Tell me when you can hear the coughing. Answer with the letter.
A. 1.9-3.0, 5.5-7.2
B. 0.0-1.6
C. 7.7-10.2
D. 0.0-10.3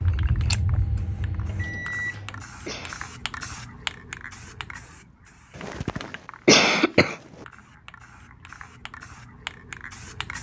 A.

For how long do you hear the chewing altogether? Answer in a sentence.
You can hear the chewing for 2 seconds altogether.